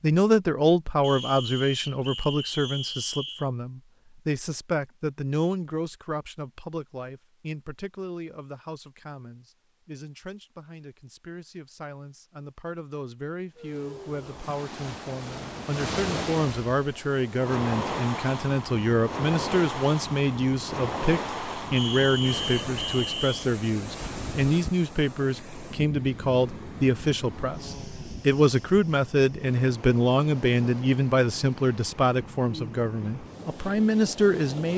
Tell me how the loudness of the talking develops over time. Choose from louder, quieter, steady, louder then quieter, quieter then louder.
quieter then louder.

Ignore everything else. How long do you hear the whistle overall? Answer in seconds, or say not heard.
4 s.